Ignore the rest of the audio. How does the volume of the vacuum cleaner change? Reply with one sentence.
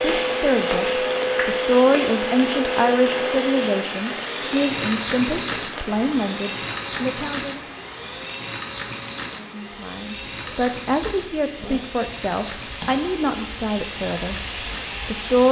The volume of the vacuum cleaner goes down.